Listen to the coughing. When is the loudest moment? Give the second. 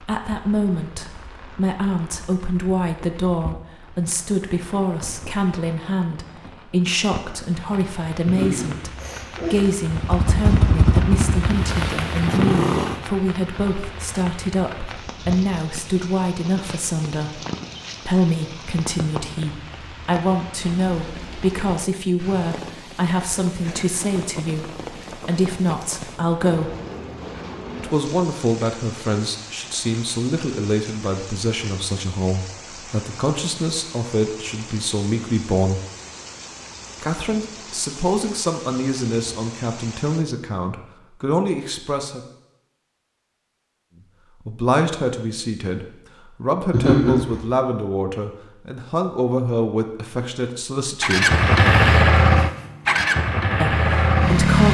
47 s.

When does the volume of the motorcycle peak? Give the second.
52 s.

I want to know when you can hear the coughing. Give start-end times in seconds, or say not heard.
8.2-9.8, 46.7-47.5.